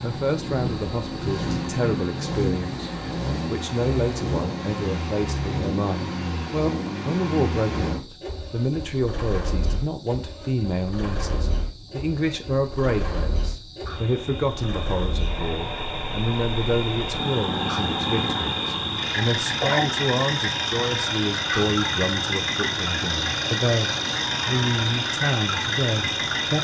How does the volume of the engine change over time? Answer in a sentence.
The volume of the engine goes down, then up.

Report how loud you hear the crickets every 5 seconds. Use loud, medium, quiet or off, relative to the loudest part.
quiet, quiet, quiet, loud, loud, loud.